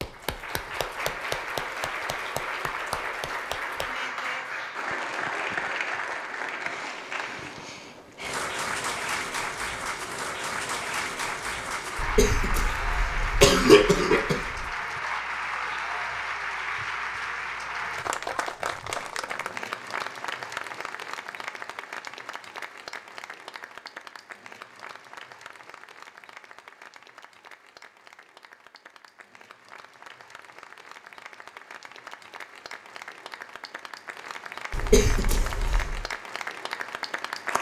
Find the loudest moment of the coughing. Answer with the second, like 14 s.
14 s.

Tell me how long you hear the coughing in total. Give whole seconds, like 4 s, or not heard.
4 s.